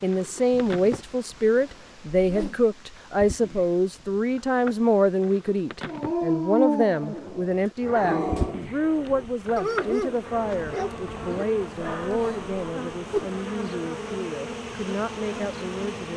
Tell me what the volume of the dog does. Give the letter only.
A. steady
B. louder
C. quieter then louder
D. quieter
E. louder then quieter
D.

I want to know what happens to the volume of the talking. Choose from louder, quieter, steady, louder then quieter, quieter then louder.
quieter.